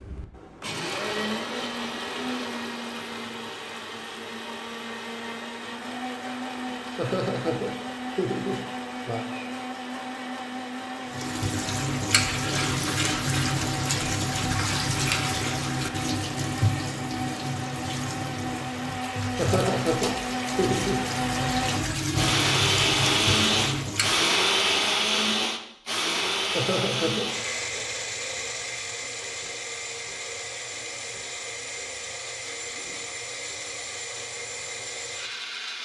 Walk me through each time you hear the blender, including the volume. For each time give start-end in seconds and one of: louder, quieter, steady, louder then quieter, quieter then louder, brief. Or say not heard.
0.0-35.8 louder then quieter.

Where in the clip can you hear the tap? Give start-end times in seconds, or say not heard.
11.1-24.2.